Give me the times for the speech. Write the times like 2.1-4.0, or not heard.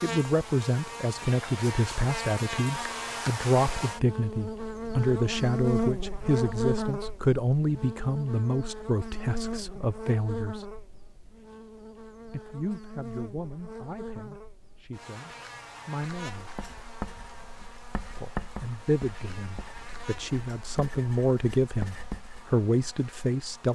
0.0-10.7, 12.3-16.5, 18.1-23.7.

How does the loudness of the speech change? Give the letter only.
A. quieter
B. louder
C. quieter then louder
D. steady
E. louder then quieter
C.